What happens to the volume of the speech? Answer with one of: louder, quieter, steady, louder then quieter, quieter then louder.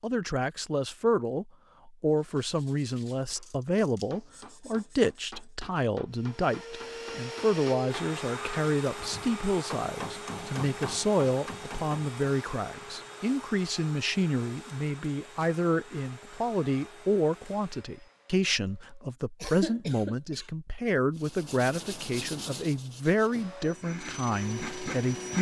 steady.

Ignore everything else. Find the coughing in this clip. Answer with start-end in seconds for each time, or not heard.
19.4-20.5.